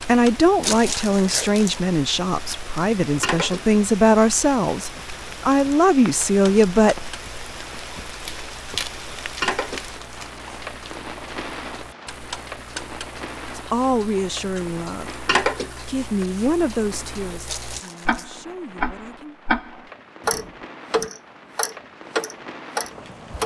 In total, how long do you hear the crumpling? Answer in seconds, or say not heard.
5 s.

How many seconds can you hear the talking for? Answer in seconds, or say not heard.
12 s.